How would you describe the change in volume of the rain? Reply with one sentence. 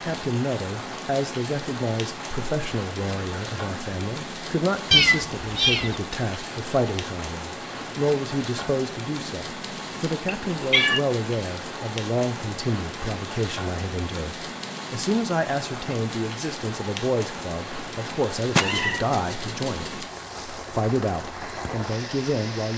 The volume of the rain stays about the same.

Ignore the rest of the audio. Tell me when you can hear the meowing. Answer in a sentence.
The meowing can be heard from 4.9 to 6.0 s, from 10.2 to 11.0 s and from 18.6 to 19.9 s.